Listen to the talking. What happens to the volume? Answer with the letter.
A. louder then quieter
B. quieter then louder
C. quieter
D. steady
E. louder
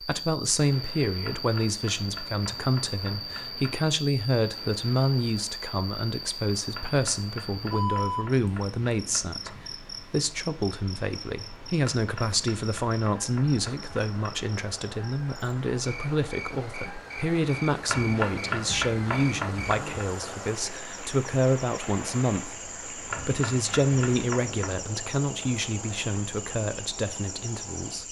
D.